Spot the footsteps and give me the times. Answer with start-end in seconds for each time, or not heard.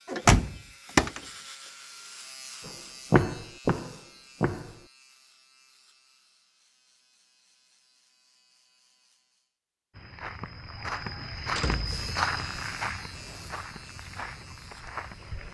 2.6-4.8, 9.9-15.4.